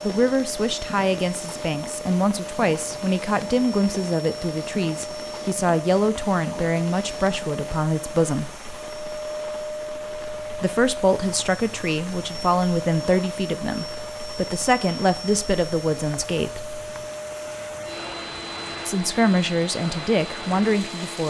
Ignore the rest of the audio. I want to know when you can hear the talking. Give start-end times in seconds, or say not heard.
0.0-8.5, 10.6-16.6, 18.9-21.2.